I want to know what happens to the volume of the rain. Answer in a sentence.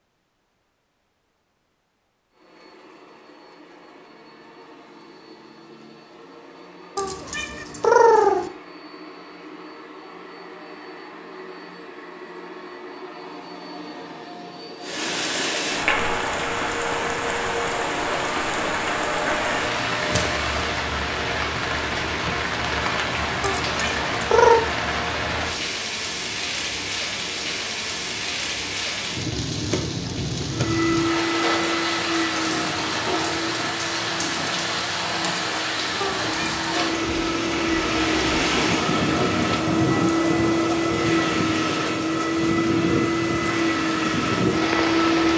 The loudness of the rain stays about the same.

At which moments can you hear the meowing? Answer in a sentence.
The meowing can be heard from 7.0 to 8.5 s, from 23.4 to 24.6 s and from 36.0 to 36.6 s.